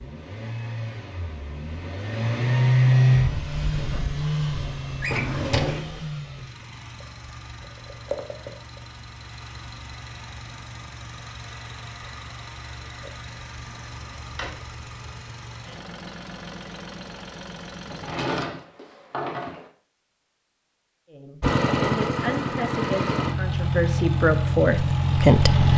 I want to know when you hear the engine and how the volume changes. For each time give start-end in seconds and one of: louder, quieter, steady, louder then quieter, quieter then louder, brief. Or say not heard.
0.0-18.4 quieter
21.4-25.7 steady.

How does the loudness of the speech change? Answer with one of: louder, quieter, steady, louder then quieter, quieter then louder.
louder.